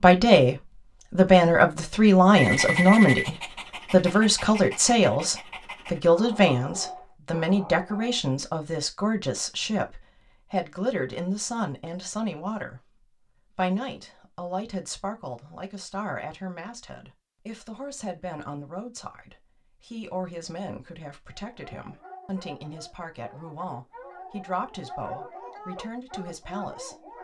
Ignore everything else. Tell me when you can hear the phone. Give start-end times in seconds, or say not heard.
2.4-3.2.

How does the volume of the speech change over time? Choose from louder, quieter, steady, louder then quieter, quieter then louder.
quieter.